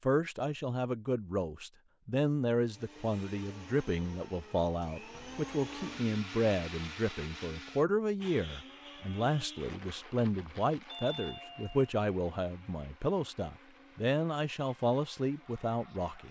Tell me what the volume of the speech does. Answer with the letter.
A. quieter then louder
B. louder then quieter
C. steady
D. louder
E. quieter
C.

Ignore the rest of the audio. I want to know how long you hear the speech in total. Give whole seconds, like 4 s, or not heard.
16 s.